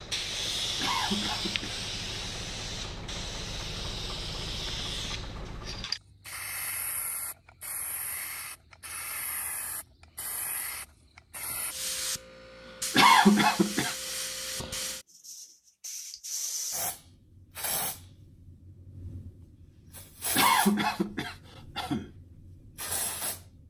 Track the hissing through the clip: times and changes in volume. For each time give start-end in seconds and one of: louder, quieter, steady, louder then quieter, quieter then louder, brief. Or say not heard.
0.0-23.6 quieter.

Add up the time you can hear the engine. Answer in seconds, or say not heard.
6 s.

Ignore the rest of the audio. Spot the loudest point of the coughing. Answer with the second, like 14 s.
13 s.